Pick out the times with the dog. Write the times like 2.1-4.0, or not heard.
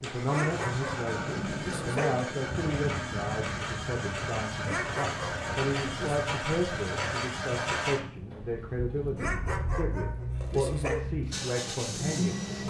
0.2-2.1, 4.6-6.2, 9.2-11.1.